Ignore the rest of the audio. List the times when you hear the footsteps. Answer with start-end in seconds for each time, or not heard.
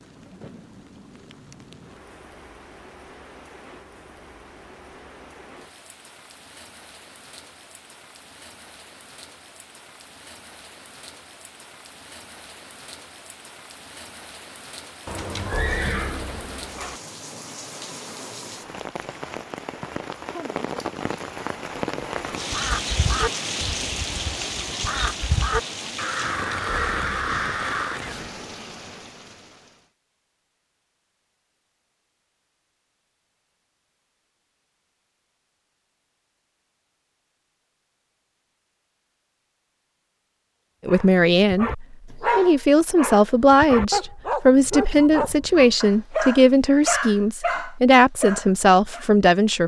not heard.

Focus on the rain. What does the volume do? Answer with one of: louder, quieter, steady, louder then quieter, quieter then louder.
louder.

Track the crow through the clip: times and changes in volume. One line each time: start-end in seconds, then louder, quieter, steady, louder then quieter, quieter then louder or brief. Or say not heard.
22.5-28.3 quieter then louder.